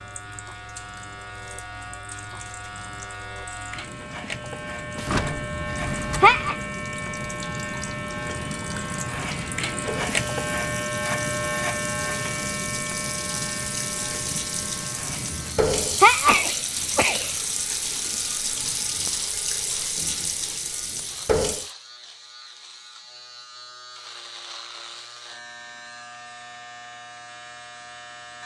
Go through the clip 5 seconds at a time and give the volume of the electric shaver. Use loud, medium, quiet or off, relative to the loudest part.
medium, loud, loud, medium, quiet, quiet.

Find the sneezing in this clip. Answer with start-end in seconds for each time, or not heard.
5.3-6.5, 15.1-17.3.